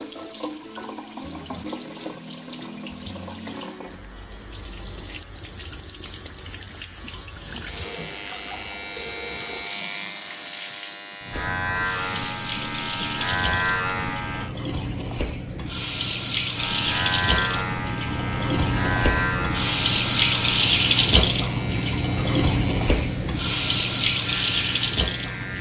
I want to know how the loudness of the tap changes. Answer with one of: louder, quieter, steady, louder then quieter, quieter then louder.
louder.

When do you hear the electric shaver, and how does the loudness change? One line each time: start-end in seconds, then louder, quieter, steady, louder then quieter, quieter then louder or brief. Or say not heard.
3.5-14.5 louder
16.6-25.5 quieter.